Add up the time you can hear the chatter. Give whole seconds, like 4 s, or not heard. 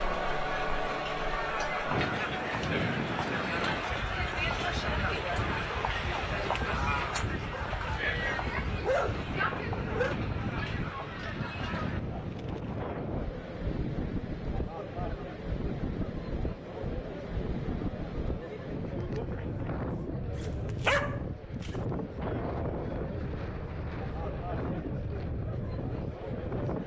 27 s.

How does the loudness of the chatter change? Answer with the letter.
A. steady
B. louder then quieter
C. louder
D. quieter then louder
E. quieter
E.